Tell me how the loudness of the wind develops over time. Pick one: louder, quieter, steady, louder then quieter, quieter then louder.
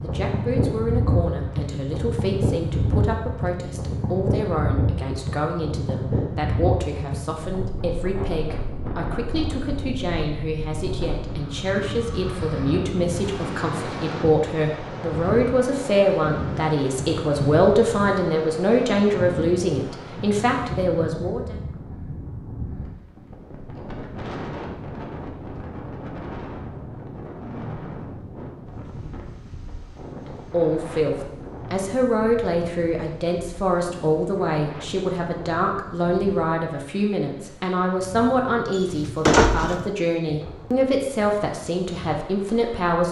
quieter.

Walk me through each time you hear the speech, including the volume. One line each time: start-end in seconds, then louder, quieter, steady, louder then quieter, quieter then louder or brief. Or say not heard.
0.0-21.6 louder
30.2-43.0 steady.